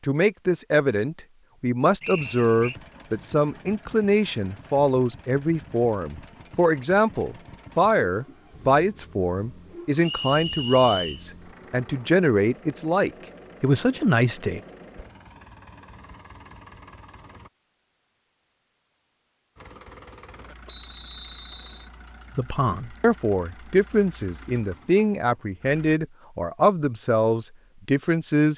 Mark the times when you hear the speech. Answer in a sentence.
The speech can be heard from 0.0 to 14.6 s and from 22.4 to 28.5 s.